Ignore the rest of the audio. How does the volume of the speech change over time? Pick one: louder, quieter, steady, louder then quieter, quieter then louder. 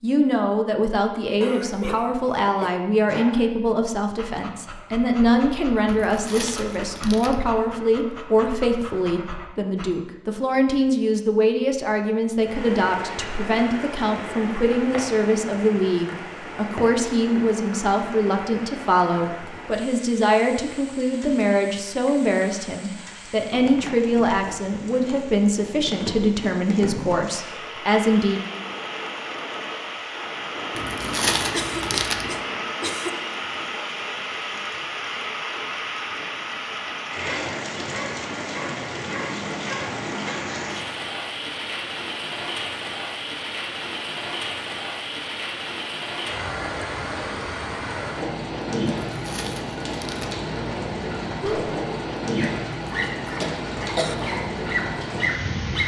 steady.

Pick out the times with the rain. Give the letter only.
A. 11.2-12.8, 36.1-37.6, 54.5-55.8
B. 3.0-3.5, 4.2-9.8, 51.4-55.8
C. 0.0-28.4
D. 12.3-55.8
D.